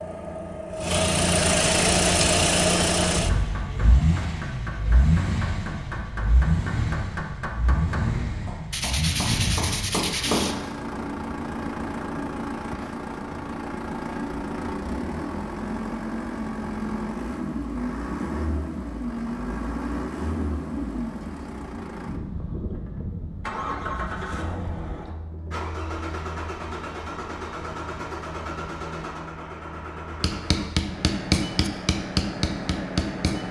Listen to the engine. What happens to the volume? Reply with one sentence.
The volume of the engine goes down.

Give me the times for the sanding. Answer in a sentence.
The sanding can be heard from 8.7 to 10.6 s.